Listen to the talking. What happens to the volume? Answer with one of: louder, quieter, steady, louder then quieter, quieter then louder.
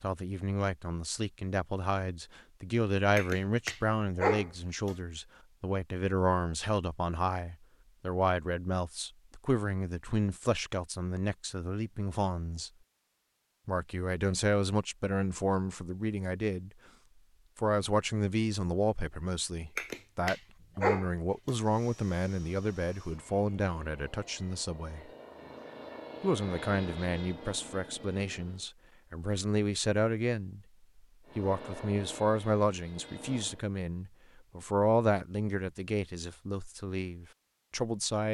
steady.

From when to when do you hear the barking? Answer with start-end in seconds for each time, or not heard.
3.1-5.0, 19.8-21.6.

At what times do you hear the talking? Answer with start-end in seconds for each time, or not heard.
0.0-12.7, 13.7-16.7, 17.6-25.1, 26.2-30.6, 31.4-38.3.